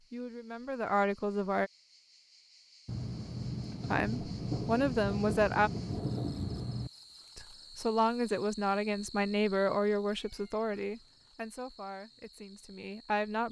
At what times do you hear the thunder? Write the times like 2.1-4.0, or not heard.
2.9-6.9.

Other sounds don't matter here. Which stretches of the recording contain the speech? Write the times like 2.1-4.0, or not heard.
0.1-1.7, 3.9-5.7, 7.3-13.4.